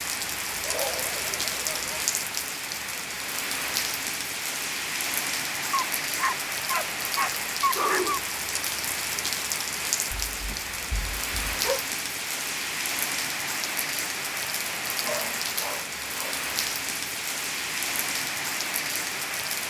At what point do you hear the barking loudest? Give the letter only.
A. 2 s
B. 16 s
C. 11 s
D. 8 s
D.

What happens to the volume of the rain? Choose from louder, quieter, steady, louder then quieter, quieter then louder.
steady.